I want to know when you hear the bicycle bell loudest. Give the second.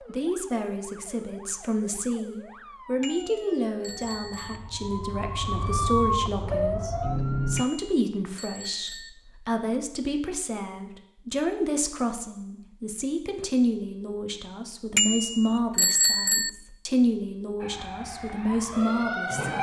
16 s.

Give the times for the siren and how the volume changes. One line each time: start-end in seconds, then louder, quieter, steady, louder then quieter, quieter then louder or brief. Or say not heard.
0.0-7.7 louder
17.6-19.5 brief.